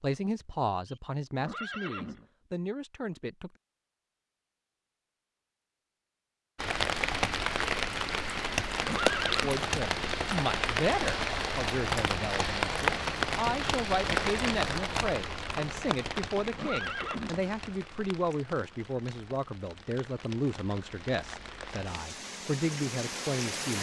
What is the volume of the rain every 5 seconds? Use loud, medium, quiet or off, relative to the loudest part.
off, loud, loud, medium, medium.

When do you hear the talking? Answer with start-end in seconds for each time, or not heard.
0.0-3.5, 9.4-23.7.